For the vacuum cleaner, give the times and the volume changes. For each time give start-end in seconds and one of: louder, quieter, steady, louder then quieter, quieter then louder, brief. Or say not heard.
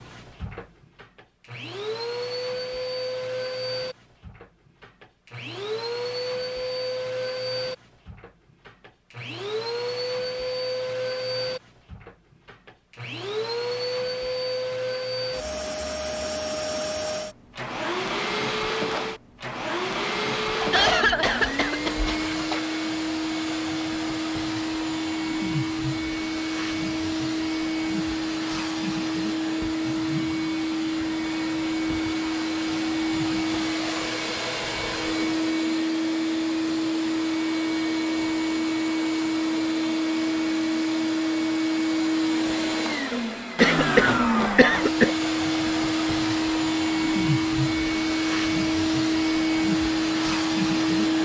0.0-51.2 louder.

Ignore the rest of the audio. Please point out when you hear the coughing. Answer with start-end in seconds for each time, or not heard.
20.6-22.6, 43.1-45.1.